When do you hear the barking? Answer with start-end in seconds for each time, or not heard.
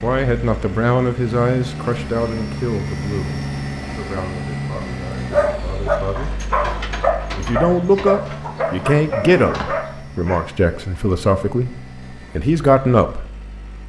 5.3-10.4.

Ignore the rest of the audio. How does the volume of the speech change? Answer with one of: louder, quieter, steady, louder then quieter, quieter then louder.
quieter then louder.